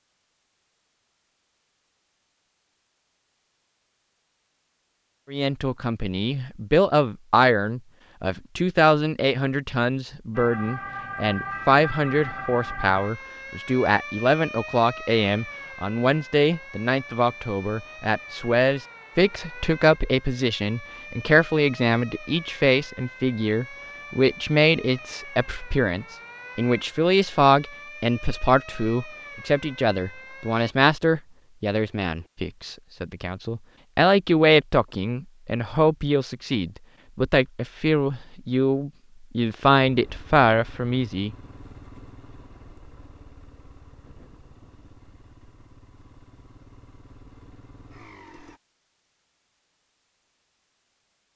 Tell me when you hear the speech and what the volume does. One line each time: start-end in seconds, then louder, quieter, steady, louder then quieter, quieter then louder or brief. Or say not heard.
5.3-41.4 steady.